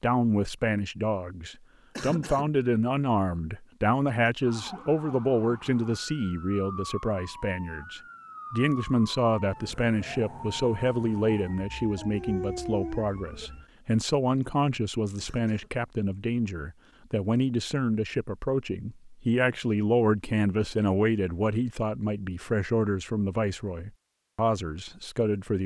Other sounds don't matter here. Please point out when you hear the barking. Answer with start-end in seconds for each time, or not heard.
11.9-13.5.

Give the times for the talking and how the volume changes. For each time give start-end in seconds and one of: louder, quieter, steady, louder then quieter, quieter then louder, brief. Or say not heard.
0.0-25.6 steady.